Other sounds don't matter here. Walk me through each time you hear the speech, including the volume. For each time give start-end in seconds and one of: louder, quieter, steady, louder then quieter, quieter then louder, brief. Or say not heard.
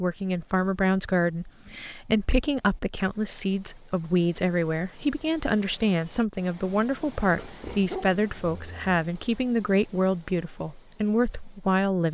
0.0-12.1 steady.